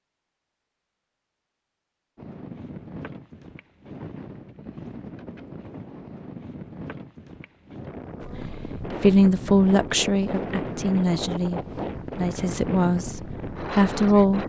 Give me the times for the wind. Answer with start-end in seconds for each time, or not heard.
2.1-14.4.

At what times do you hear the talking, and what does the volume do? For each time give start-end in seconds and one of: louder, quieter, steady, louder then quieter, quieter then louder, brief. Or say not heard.
8.2-14.4 quieter.